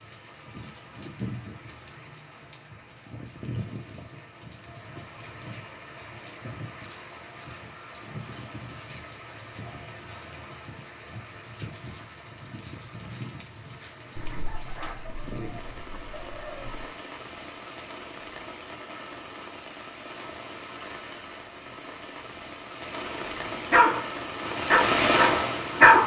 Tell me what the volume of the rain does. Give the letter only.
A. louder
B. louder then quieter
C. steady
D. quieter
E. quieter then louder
A.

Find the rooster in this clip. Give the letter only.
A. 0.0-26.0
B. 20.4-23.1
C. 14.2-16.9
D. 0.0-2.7
C.